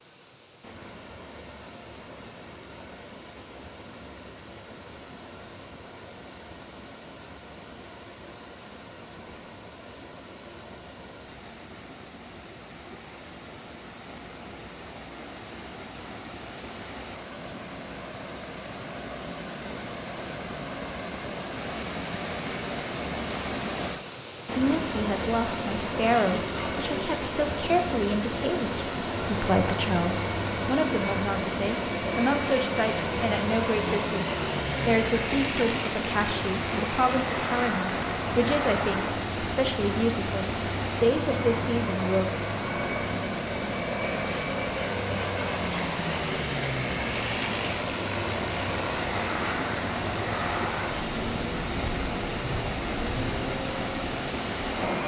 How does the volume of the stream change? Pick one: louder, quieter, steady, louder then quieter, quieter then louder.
louder.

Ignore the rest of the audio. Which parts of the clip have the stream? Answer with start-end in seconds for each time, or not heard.
0.0-55.0.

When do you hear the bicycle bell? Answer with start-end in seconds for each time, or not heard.
26.1-26.9.